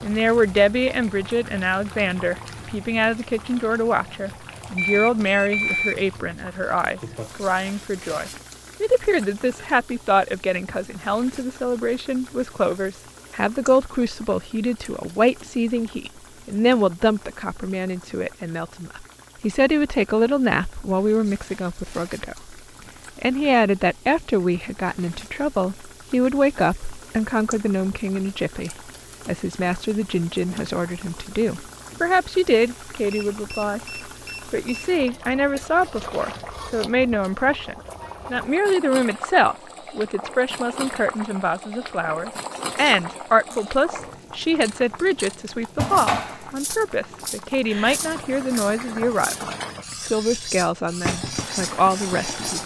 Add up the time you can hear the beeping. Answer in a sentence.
The beeping can be heard for 3 seconds in total.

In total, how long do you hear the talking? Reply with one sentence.
You can hear the talking for 51 seconds altogether.